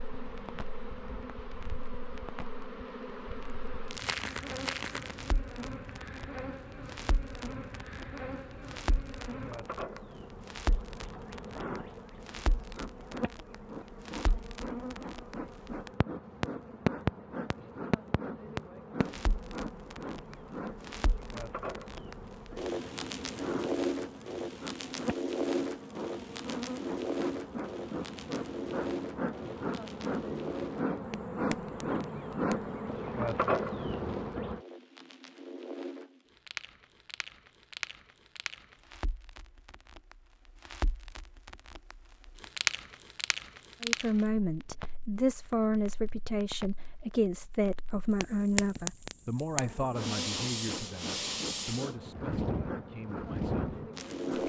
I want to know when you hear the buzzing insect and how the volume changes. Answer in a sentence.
You can hear the buzzing insect from 0.0 to 34.6 s, getting louder; and from 49.5 to 54.4 s, at a steady volume.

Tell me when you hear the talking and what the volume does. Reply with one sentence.
The talking can be heard from 43.8 to 54.4 s, getting quieter.